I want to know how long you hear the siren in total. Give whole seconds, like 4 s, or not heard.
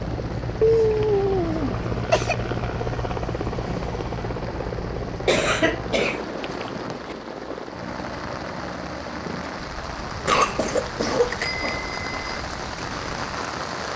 not heard.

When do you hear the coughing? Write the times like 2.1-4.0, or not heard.
0.6-2.4, 5.2-7.2, 10.2-11.9.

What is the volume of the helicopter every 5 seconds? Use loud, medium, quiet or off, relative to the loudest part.
loud, medium, quiet.